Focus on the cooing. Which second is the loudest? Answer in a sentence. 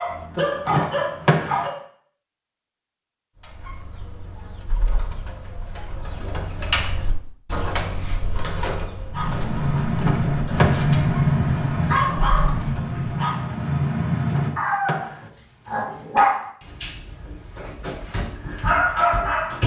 The loudest moment of the cooing is at 7 seconds.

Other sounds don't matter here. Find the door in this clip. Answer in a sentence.
The door can be heard from 0.7 to 1.7 s, from 9.9 to 10.9 s and from 14.2 to 15.3 s.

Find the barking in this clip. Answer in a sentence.
You can hear the barking from 0.0 to 1.8 s and from 9.1 to 19.6 s.